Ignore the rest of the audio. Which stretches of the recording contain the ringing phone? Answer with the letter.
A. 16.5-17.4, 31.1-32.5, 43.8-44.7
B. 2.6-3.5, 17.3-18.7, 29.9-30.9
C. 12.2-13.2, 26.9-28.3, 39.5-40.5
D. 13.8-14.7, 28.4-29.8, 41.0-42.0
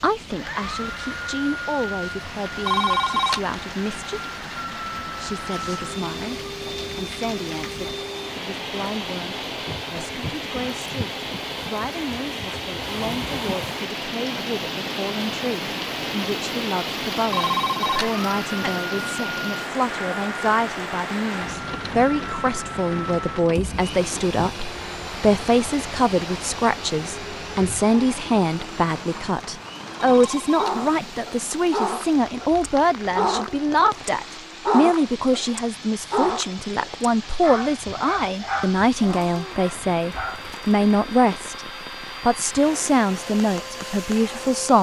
B.